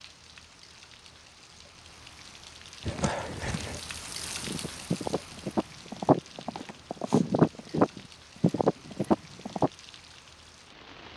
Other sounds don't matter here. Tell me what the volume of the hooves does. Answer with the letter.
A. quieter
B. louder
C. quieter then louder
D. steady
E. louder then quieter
B.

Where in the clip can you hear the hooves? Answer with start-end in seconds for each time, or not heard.
2.9-9.7.